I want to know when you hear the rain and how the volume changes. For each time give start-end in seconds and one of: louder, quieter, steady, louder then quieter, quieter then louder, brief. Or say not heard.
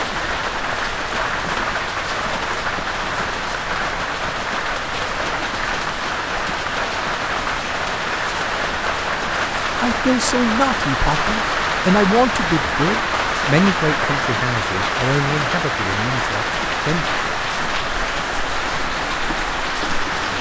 0.0-20.3 steady.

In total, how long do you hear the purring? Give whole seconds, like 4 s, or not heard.
not heard.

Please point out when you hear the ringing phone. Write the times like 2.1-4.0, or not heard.
not heard.